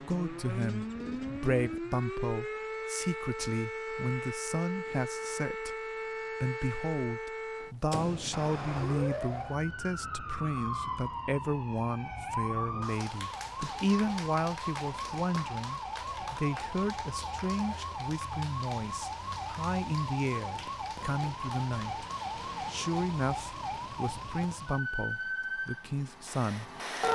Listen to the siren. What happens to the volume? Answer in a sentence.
The volume of the siren stays about the same.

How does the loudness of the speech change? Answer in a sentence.
The loudness of the speech stays about the same.